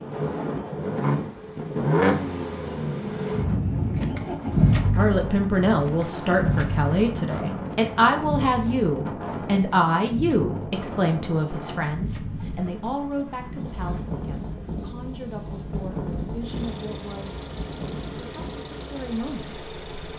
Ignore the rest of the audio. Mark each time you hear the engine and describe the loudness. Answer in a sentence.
The engine can be heard from 0.0 to 20.1 s, getting quieter.